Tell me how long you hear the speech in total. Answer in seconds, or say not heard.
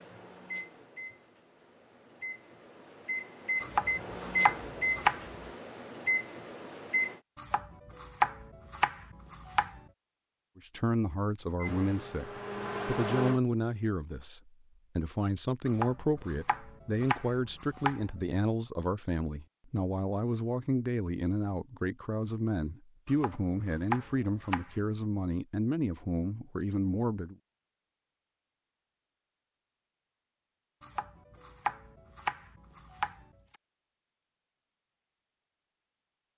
17 s.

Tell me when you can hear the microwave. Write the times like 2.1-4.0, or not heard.
0.0-7.2, 11.6-13.4.